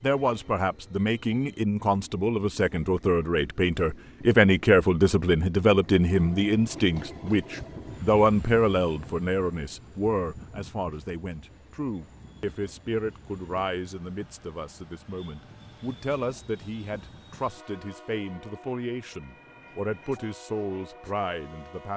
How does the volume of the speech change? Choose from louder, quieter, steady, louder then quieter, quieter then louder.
quieter.